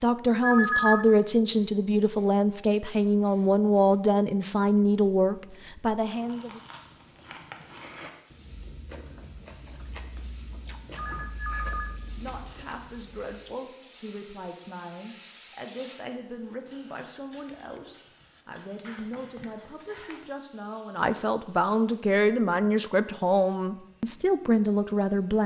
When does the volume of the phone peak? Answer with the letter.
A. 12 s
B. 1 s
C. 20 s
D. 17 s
B.